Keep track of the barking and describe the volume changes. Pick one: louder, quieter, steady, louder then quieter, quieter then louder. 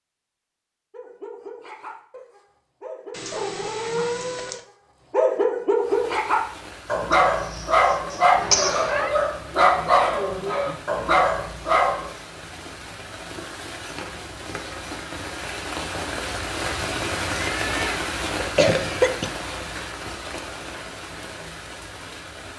louder.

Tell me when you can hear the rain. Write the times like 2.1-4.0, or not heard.
5.8-22.5.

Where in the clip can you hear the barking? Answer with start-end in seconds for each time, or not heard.
0.9-12.1.